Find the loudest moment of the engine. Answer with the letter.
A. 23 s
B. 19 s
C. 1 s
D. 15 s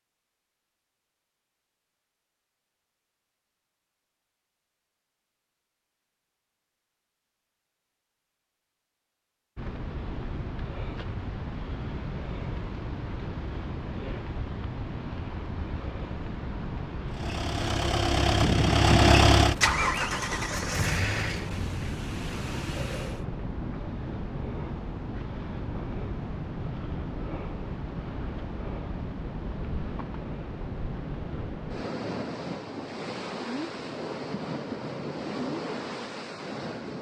B.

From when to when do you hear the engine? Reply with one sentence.
You can hear the engine from 17.1 to 23.2 s.